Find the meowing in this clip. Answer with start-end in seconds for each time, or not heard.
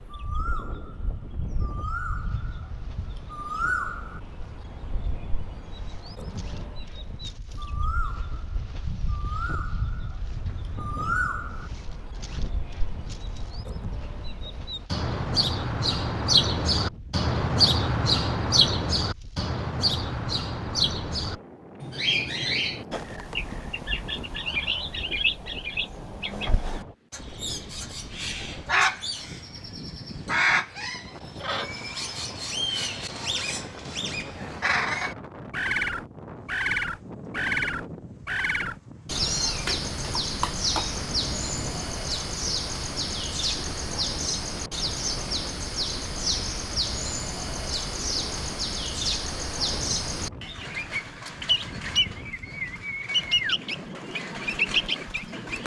39.1-41.8.